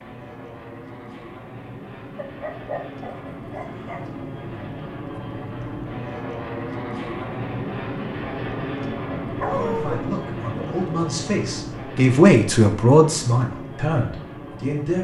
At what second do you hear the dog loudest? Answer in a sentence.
The volume of the dog peaks at 10 seconds.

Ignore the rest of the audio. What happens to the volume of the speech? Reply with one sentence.
The volume of the speech goes up, then down.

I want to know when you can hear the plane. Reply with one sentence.
You can hear the plane from 0.0 to 14.9 s.